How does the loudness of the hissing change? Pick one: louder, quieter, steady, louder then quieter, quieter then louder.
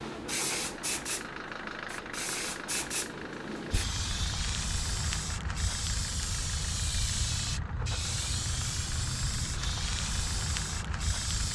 steady.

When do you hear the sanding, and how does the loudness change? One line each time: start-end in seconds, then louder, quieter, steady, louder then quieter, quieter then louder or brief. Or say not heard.
not heard.